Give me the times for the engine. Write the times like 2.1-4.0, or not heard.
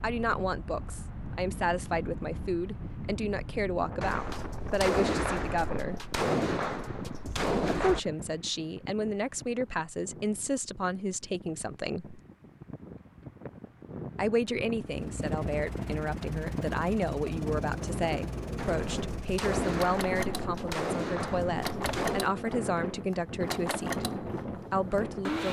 14.8-25.4.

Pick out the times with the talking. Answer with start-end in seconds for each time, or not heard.
0.0-6.0, 7.7-12.2, 14.2-25.4.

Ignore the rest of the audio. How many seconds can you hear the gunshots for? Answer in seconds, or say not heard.
8 s.